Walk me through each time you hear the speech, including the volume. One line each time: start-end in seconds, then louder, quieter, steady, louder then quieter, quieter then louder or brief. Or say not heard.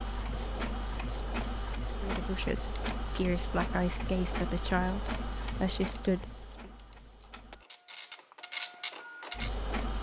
2.0-6.7 louder.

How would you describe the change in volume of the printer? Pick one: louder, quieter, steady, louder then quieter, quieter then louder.
quieter then louder.